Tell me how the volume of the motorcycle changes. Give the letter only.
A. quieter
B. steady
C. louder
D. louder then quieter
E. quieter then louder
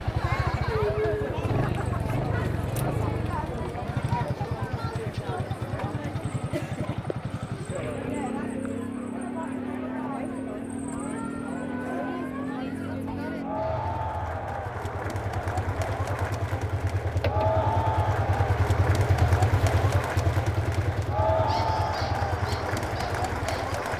B.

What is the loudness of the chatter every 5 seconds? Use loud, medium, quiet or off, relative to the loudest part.
loud, medium, medium, loud, loud.